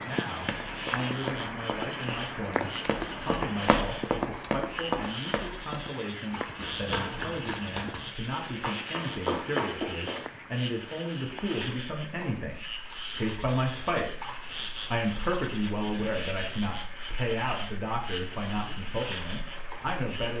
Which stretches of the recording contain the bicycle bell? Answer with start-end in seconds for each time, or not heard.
not heard.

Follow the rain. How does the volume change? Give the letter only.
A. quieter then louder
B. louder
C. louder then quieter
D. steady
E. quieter
E.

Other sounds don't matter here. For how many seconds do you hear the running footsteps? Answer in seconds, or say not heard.
10 s.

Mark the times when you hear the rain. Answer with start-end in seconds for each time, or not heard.
0.0-20.3.